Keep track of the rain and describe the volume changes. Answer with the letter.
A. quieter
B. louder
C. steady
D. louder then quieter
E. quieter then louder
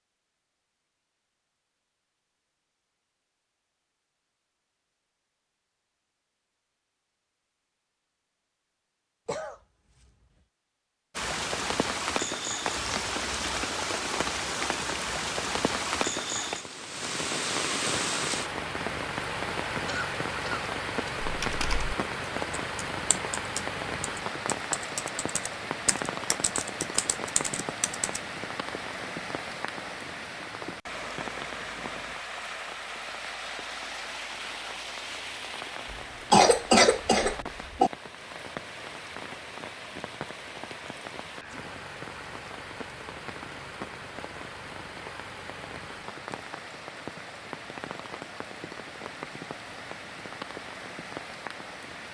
A.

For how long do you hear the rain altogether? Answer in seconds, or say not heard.
41 s.